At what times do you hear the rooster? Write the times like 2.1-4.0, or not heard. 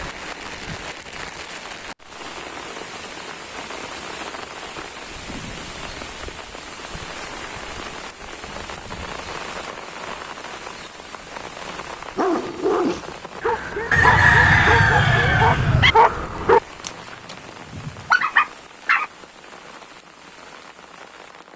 13.9-15.9.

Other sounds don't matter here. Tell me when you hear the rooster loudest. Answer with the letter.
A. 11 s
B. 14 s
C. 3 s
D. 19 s
B.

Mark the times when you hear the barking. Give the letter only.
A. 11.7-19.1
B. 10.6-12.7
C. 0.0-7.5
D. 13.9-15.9
A.